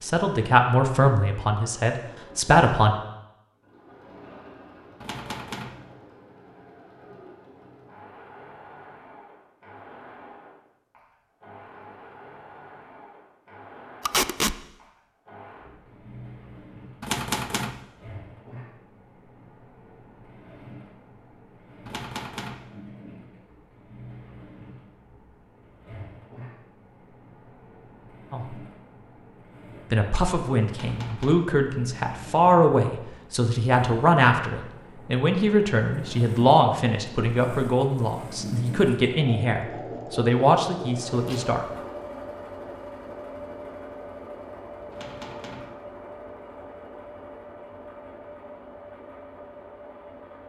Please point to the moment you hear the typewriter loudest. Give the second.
17 s.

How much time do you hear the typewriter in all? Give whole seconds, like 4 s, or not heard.
4 s.